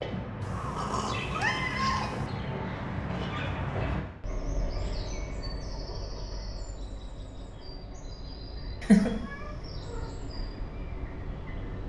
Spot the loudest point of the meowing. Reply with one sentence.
The volume of the meowing peaks at 9 seconds.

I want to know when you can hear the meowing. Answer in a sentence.
The meowing can be heard from 0.4 to 2.3 s and from 8.8 to 10.0 s.